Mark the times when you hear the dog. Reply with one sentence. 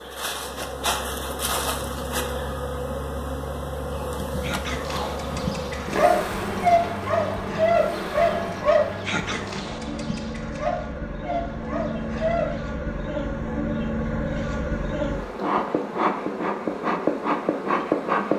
You can hear the dog from 4.4 to 12.6 s.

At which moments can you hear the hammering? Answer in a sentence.
The hammering can't be heard in this clip.